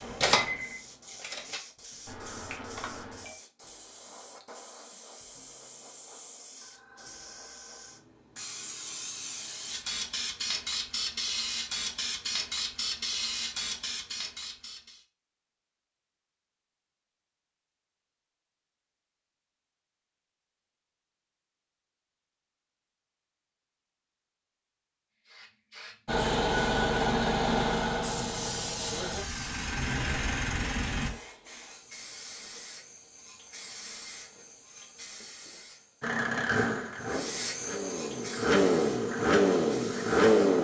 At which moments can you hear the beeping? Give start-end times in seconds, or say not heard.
2.0-3.4.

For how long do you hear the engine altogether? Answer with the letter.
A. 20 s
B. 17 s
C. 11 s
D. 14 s
C.